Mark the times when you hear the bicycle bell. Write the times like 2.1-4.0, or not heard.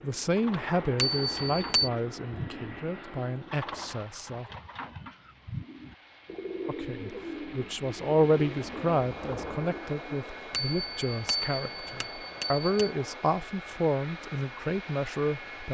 0.9-1.9, 10.5-12.9.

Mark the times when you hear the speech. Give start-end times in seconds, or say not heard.
0.0-4.5, 6.7-15.6.